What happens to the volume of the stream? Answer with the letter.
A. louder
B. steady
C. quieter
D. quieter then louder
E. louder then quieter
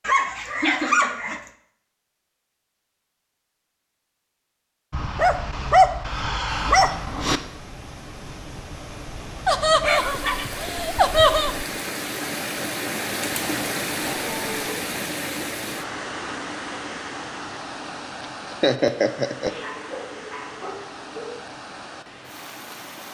E.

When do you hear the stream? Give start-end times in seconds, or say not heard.
6.6-23.0.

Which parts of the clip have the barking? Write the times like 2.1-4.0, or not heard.
0.1-1.4, 4.9-7.4, 9.8-11.7, 14.1-14.8, 19.4-21.4.